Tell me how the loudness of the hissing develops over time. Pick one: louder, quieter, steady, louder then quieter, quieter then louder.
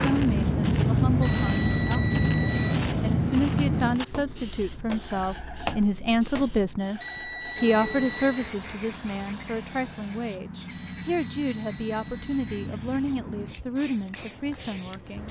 quieter.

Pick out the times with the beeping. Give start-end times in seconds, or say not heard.
1.2-2.8, 7.0-8.5, 10.8-12.7.